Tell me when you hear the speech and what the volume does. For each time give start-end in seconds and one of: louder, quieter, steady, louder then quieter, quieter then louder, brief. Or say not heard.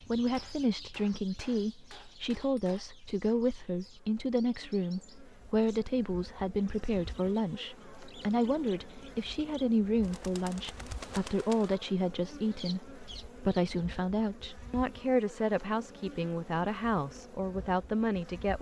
0.1-18.5 steady.